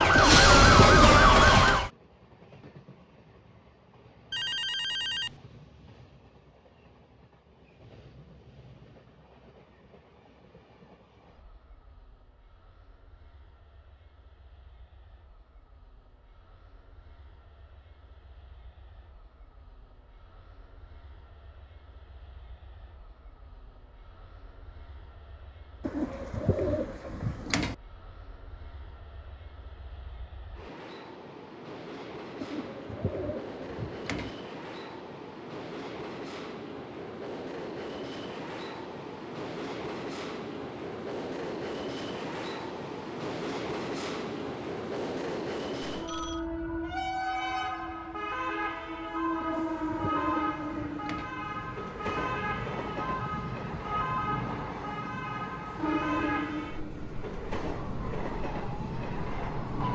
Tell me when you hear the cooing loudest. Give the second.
1 s.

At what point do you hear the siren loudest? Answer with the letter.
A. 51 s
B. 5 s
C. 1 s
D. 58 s
C.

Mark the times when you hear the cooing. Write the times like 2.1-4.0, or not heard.
0.1-1.7, 25.8-27.8, 32.4-34.4, 49.4-51.3.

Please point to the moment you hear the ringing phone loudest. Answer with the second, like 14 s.
5 s.